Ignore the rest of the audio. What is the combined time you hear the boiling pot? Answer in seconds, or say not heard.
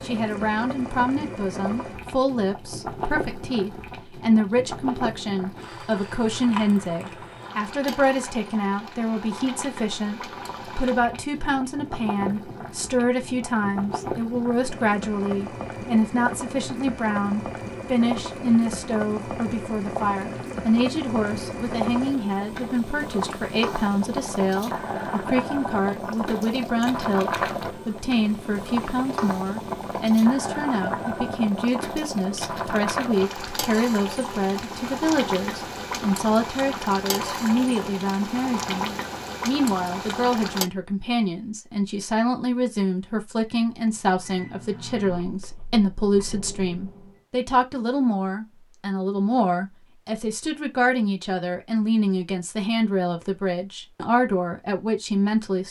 41 s.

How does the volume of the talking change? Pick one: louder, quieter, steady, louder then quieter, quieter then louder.
steady.